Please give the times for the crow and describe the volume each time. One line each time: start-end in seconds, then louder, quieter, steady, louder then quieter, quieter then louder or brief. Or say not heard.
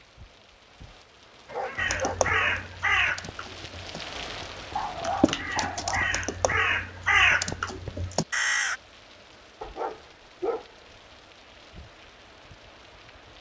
1.8-8.8 quieter then louder.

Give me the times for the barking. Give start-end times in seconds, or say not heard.
1.4-2.7, 4.7-6.2, 9.6-10.7.